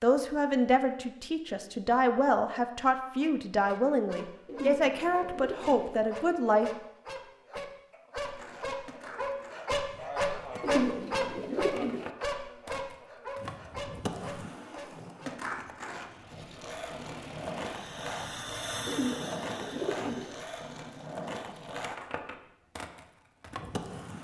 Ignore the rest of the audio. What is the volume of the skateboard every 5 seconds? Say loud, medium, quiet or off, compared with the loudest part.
off, medium, loud, loud, loud.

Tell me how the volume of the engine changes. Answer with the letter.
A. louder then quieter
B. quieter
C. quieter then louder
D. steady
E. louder
A.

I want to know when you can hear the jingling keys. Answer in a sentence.
You can't hear the jingling keys here.